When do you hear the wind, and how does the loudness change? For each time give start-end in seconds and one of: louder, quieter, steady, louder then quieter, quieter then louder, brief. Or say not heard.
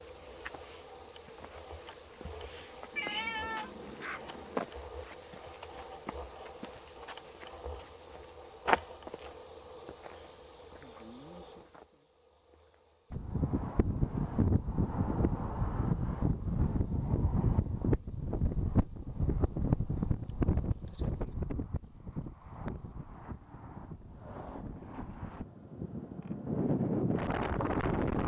13.1-28.2 quieter then louder.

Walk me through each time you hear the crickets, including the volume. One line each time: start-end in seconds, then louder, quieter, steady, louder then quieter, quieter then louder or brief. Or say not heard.
0.0-28.2 quieter.